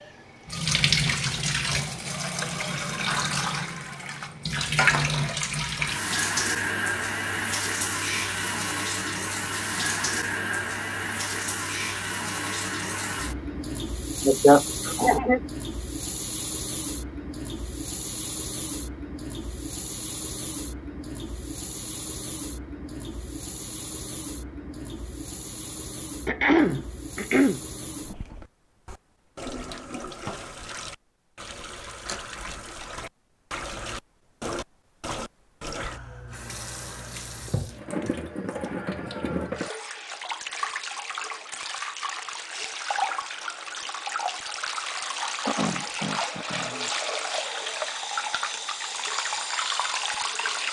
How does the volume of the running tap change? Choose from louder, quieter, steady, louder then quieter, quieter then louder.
quieter then louder.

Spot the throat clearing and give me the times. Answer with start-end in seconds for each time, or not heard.
14.2-15.4, 26.2-27.6, 45.5-46.9.